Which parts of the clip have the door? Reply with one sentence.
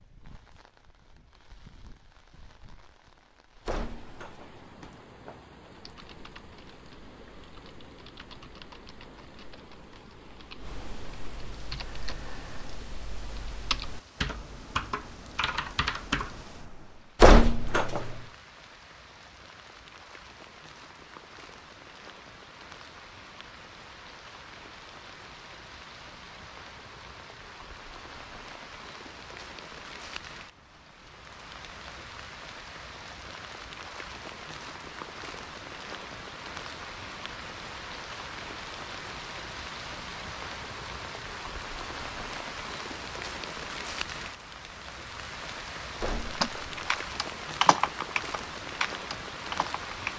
You can hear the door from 3.6 to 5.4 s, from 17.2 to 18.2 s and from 46.0 to 46.8 s.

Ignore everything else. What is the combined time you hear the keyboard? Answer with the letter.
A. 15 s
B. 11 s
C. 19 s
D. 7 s
A.